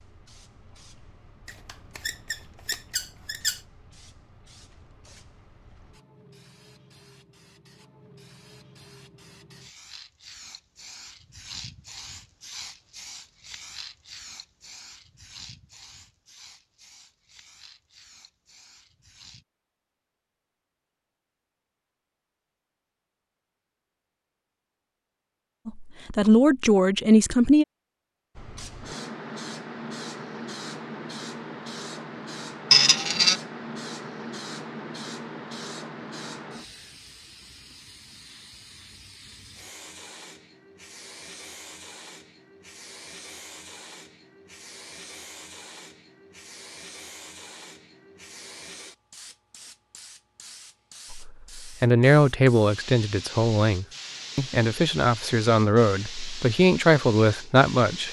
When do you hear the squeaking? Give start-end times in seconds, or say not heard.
1.4-3.6, 32.7-33.4.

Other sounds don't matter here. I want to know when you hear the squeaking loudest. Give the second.
33 s.